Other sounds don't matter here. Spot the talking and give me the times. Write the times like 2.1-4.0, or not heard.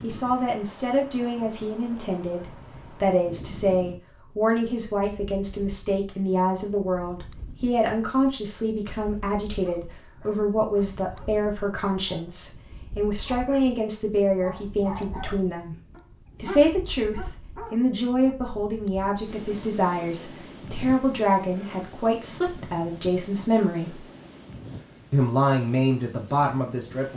0.0-15.8, 16.4-24.0, 25.1-27.1.